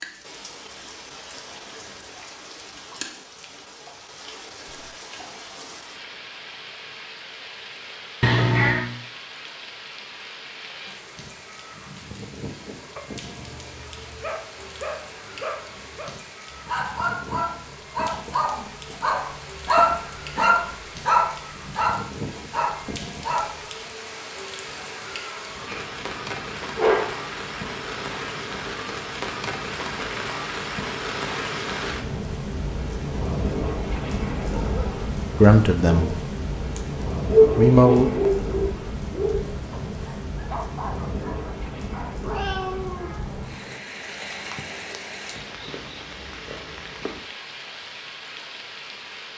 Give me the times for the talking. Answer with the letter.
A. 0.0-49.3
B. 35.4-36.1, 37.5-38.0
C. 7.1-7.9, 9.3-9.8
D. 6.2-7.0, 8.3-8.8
B.